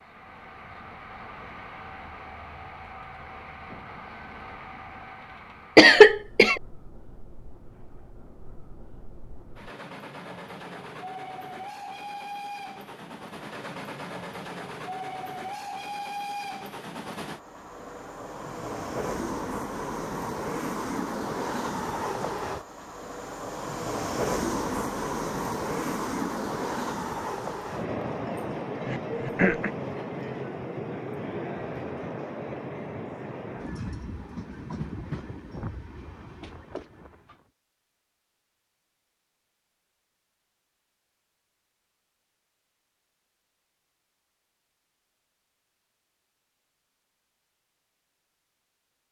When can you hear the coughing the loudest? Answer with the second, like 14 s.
6 s.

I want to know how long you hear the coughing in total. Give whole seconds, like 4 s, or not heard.
2 s.